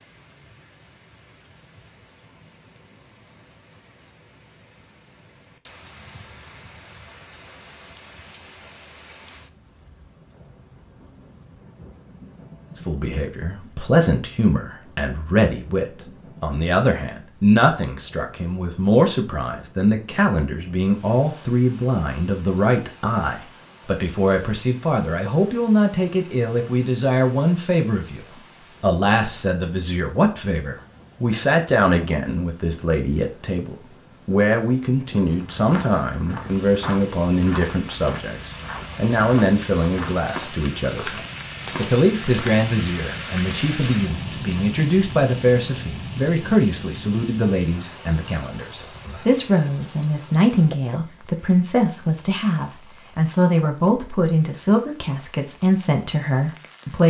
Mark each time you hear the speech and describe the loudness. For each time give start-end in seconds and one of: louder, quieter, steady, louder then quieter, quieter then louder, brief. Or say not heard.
12.8-57.0 steady.